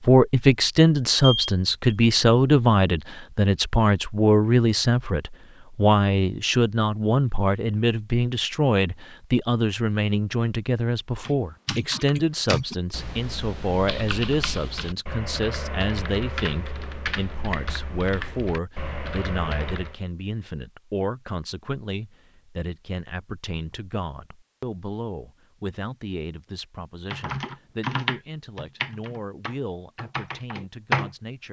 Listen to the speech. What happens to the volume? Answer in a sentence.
The volume of the speech goes down.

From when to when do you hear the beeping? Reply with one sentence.
You can hear the beeping from 1.2 to 1.9 s.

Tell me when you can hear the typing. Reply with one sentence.
You can hear the typing from 11.2 to 19.9 s and from 27.1 to 31.1 s.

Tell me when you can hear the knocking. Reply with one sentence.
You can't hear the knocking here.